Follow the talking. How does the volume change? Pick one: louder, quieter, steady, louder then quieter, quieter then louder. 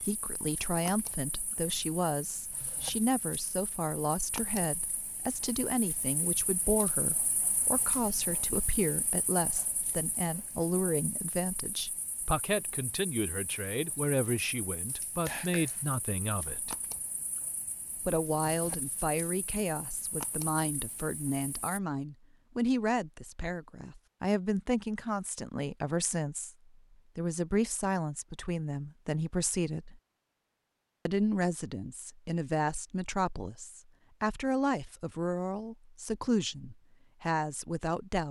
steady.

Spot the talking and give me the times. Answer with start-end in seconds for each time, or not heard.
0.0-16.8, 18.0-30.0, 31.1-38.2.